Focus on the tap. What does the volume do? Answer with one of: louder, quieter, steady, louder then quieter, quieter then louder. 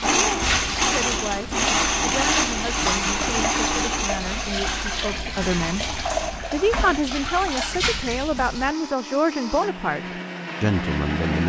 steady.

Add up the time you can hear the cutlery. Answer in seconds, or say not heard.
not heard.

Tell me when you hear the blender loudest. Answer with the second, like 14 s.
2 s.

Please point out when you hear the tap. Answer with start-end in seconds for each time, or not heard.
0.0-8.8.